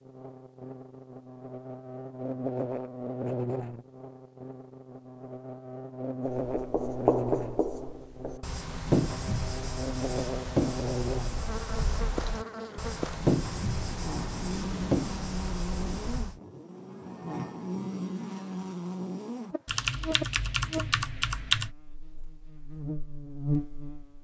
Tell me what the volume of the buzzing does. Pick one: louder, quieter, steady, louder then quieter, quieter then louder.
steady.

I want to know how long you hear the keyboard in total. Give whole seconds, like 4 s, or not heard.
2 s.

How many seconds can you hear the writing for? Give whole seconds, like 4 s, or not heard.
10 s.